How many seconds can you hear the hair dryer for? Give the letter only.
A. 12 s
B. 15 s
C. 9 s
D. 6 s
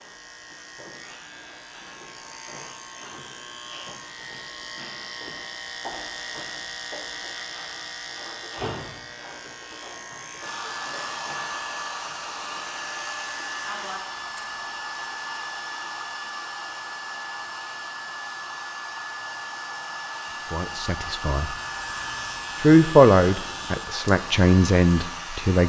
B.